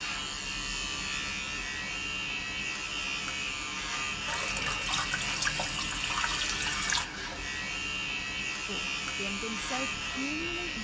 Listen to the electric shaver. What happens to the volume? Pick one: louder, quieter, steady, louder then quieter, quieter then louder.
steady.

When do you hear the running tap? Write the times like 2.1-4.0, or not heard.
4.2-7.0.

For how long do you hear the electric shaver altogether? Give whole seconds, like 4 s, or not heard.
11 s.